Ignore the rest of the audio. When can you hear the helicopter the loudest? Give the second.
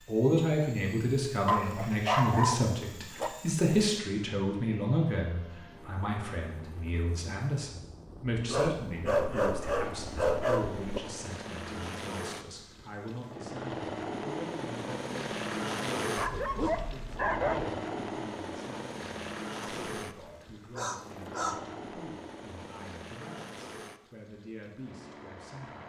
16 s.